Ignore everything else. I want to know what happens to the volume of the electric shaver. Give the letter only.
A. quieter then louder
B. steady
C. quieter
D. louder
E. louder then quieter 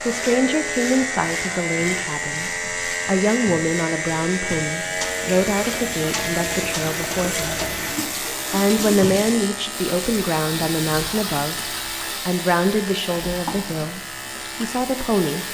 C.